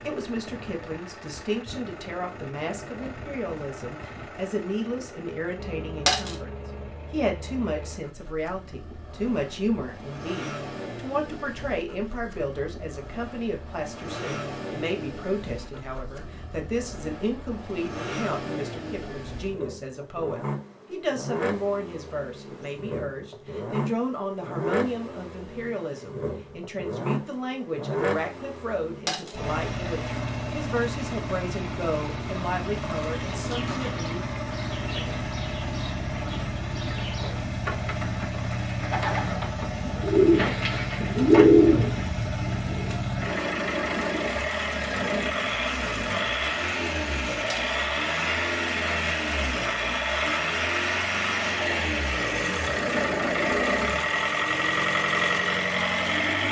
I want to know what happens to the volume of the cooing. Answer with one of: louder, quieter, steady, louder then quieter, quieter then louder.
louder.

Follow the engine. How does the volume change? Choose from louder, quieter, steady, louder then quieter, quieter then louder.
louder.